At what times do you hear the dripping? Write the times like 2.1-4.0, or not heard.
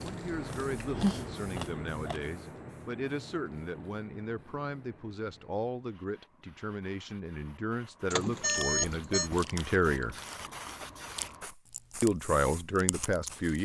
not heard.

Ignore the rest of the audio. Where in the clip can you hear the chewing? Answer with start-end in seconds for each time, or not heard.
0.0-2.2, 8.2-13.6.